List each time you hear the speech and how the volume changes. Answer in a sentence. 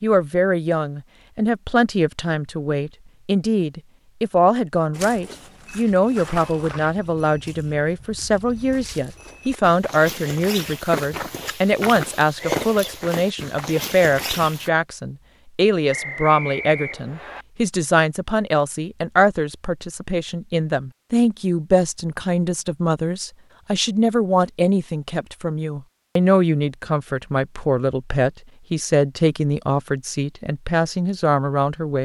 You can hear the speech from 0.0 to 31.9 s, at a steady volume.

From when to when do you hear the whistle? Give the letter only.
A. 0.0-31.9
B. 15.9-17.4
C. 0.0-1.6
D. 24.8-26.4
B.